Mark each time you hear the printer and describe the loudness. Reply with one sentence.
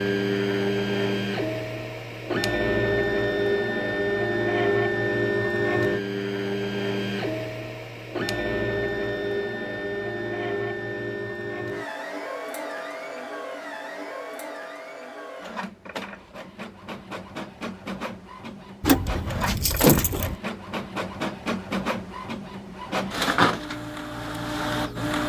You can hear the printer from 0.0 to 25.2 s, getting quieter then louder.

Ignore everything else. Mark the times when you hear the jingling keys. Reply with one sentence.
The jingling keys can be heard from 18.8 to 20.4 s.